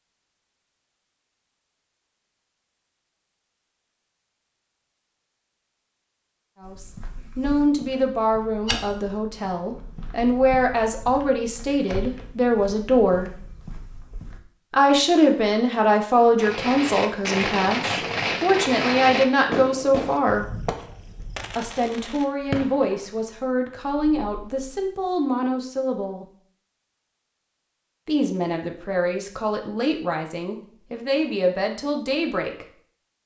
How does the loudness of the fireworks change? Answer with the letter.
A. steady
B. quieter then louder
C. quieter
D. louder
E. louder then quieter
C.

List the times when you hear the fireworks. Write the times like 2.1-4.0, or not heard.
16.4-24.9.